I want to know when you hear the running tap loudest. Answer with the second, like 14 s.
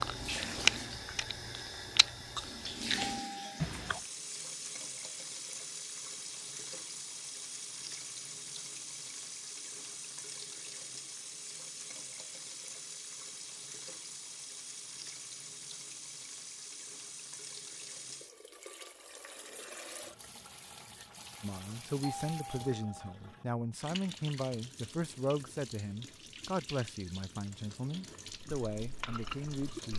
3 s.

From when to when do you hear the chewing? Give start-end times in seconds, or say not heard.
0.0-4.0, 28.2-29.9.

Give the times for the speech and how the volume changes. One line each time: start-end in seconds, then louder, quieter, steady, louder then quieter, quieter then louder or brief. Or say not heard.
21.4-29.9 steady.